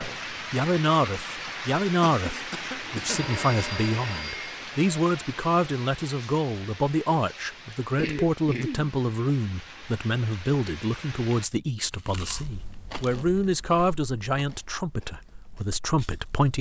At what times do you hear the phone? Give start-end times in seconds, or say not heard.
3.0-4.5.